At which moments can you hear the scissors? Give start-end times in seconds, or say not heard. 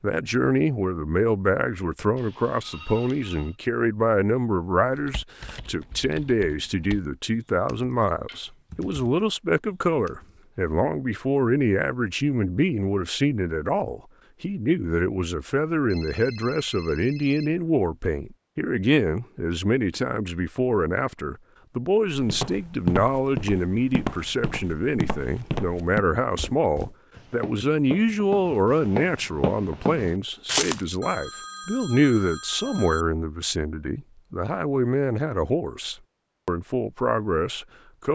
not heard.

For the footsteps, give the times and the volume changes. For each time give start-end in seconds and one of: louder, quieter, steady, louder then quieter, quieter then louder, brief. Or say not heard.
22.1-30.9 quieter then louder.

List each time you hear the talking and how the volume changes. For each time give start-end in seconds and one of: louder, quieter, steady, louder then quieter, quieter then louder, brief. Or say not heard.
0.0-38.1 steady.